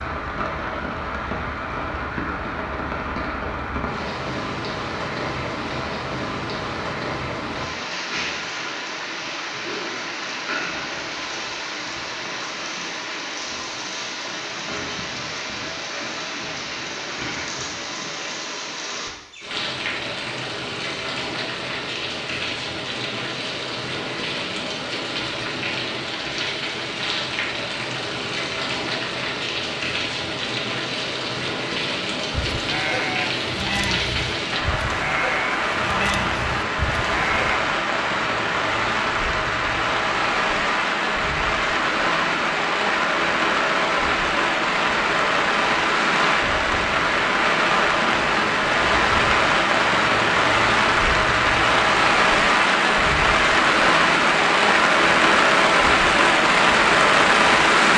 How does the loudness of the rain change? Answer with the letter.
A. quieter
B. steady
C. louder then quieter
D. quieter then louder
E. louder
E.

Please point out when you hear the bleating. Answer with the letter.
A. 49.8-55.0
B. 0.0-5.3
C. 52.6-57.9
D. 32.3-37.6
D.